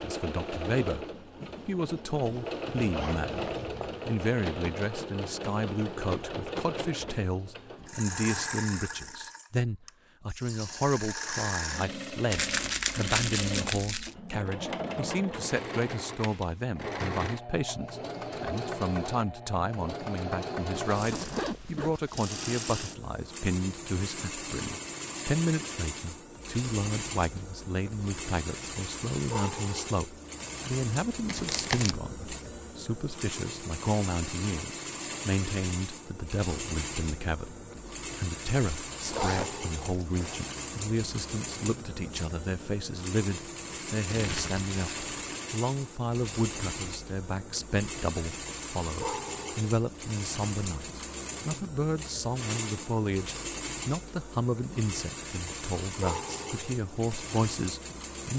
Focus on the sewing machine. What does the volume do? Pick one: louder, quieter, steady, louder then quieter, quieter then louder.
steady.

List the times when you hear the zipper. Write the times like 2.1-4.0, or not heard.
2.7-4.0, 20.7-22.1, 39.0-40.5.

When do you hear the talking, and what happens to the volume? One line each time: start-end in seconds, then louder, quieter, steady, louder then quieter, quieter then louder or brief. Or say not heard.
0.0-1.1 brief
1.6-58.3 steady.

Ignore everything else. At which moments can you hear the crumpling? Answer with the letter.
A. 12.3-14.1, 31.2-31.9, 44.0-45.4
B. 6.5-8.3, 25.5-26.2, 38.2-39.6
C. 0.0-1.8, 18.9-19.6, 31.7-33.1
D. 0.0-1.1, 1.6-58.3
A.